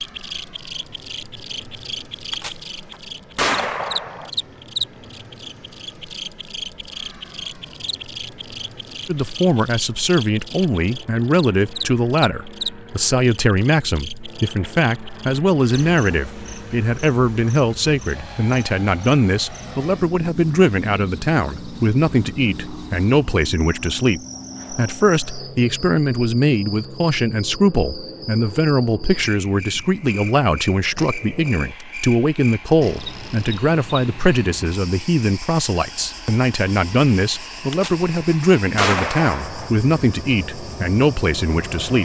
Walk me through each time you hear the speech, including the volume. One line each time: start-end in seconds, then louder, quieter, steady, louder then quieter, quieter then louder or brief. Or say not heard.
9.1-42.0 steady.